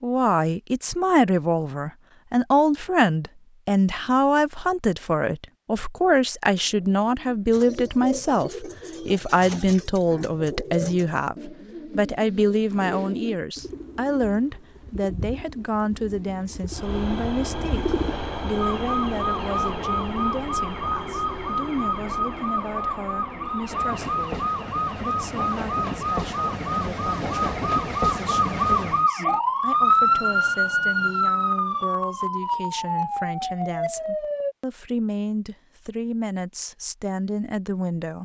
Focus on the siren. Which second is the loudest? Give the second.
30 s.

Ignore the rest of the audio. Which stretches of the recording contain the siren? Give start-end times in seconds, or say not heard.
18.6-34.5.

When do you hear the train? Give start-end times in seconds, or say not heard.
16.7-29.1.